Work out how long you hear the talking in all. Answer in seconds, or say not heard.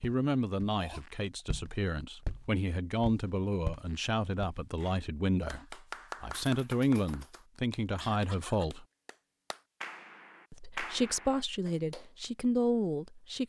12 s.